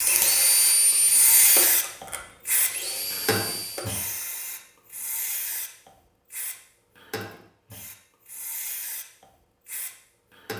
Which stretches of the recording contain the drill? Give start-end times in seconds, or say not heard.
0.0-4.0.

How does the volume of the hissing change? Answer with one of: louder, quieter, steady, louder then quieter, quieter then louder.
quieter.